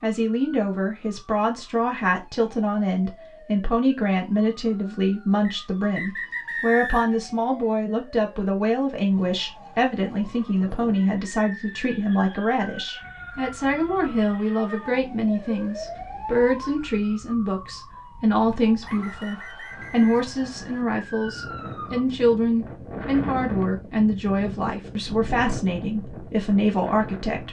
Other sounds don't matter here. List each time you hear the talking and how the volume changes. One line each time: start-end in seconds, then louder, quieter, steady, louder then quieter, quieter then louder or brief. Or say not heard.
0.0-27.4 steady.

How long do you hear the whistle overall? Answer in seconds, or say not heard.
4 s.